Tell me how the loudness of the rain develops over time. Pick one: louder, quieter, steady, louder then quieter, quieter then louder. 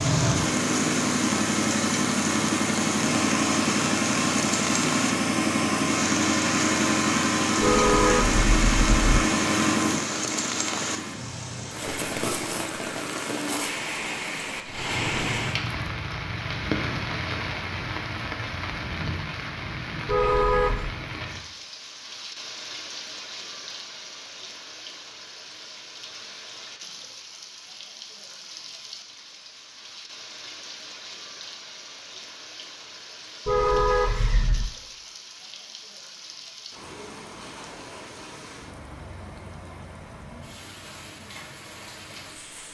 quieter.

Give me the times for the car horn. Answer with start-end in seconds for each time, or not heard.
7.6-9.2, 20.1-20.9, 33.5-34.7.